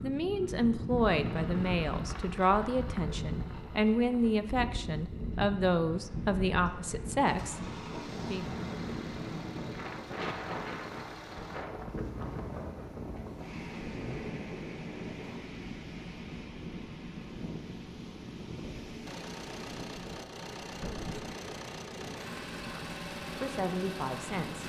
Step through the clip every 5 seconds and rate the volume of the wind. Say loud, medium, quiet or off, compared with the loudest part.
loud, loud, loud, loud, medium.